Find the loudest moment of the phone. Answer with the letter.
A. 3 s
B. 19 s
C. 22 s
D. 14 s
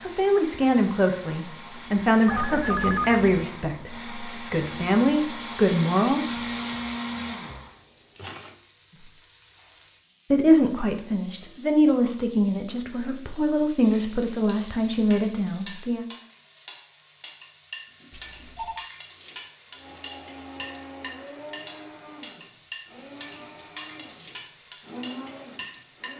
A.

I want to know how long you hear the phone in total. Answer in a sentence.
You can hear the phone for 2 seconds altogether.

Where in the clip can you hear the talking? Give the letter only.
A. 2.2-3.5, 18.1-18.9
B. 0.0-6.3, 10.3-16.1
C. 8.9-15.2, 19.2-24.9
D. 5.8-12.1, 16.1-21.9
B.